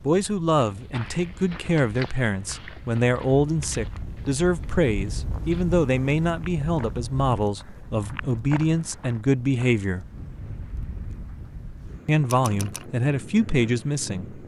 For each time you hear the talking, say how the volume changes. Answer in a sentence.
You can hear the talking from 0.0 to 10.1 s, at a steady volume; and briefly from 12.1 to 14.4 s.